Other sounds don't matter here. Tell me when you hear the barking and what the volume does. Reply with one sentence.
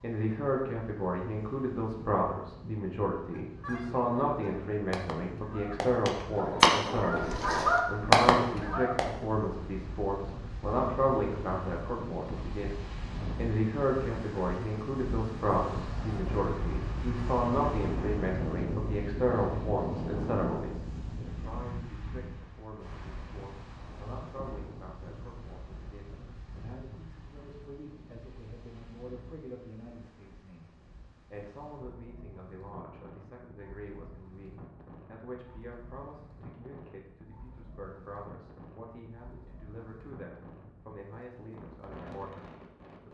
You can't hear the barking here.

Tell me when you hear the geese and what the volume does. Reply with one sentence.
You can hear the geese from 3.3 to 9.1 s, getting louder.